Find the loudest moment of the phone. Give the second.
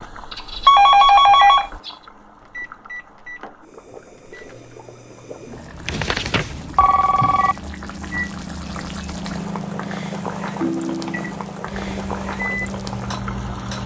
1 s.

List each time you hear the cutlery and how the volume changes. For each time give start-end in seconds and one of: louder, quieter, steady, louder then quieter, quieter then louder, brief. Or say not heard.
not heard.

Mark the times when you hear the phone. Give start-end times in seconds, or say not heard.
0.3-1.9, 5.8-7.5, 10.6-11.3.